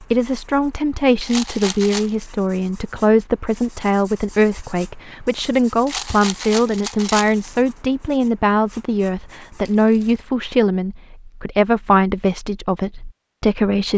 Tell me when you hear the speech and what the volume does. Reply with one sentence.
The speech can be heard from 0.0 to 13.9 s, at a steady volume.